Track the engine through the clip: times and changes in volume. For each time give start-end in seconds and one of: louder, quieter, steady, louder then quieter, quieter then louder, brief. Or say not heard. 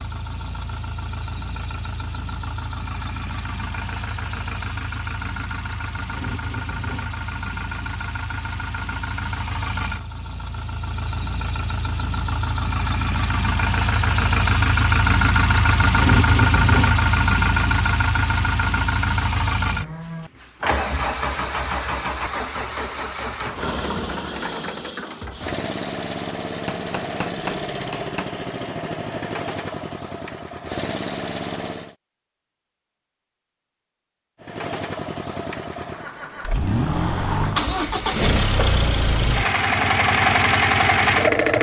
0.0-31.9 louder then quieter
34.4-41.5 louder.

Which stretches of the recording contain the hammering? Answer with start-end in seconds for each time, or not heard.
26.6-28.4.